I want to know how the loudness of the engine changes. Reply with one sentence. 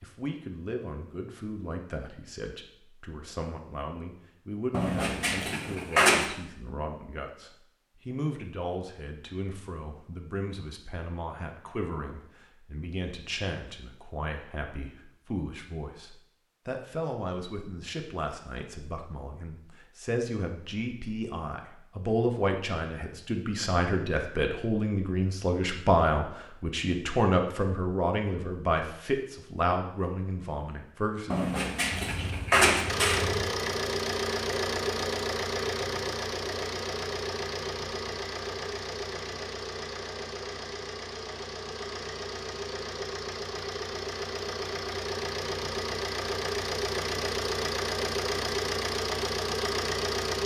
The volume of the engine goes down, then up.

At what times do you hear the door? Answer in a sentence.
The door can be heard from 4.7 to 6.3 s and from 31.3 to 33.2 s.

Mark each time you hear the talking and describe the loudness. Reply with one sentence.
You can hear the talking from 0.0 to 31.4 s, getting louder.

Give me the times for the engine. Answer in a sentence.
The engine can be heard from 32.9 to 50.4 s.